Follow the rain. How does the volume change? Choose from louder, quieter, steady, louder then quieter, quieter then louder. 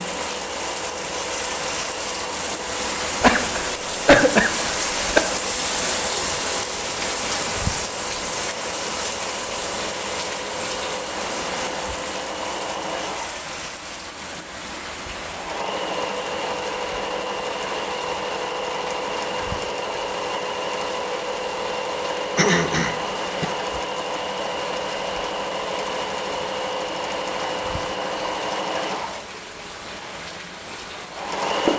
quieter.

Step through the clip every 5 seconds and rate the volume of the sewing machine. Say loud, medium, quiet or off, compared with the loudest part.
medium, medium, medium, loud, loud, loud, loud.